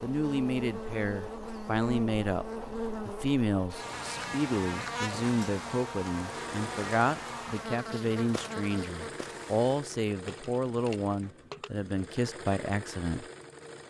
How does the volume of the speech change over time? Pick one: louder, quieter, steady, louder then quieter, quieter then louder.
steady.